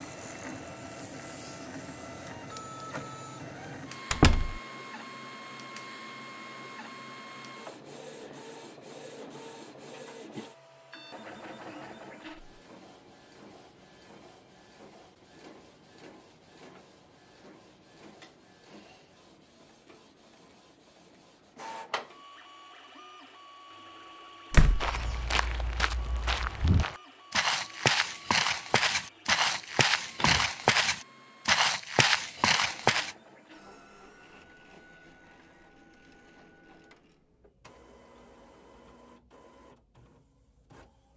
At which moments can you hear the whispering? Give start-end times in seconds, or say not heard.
not heard.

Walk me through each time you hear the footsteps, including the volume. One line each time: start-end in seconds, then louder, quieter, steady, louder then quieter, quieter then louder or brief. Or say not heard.
24.8-33.1 louder.